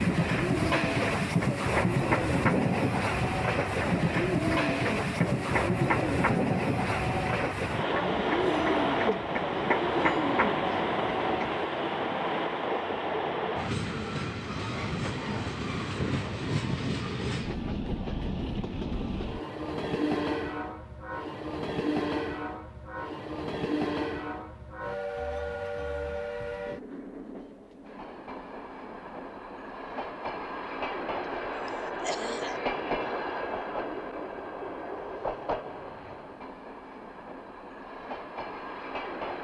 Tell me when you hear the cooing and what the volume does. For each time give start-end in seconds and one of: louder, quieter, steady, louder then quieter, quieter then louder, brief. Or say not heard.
0.1-11.7 steady.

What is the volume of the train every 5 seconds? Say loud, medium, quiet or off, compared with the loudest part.
loud, loud, loud, medium, medium, medium, medium, medium.